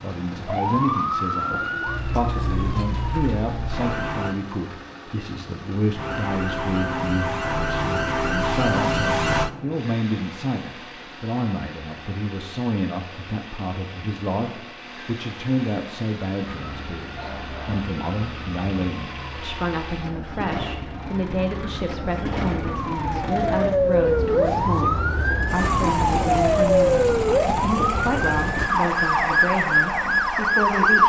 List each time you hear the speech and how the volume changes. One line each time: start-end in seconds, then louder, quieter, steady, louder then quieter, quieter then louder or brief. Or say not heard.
0.0-31.0 steady.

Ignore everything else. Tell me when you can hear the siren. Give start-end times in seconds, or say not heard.
0.5-4.3, 6.0-9.5, 16.4-31.0.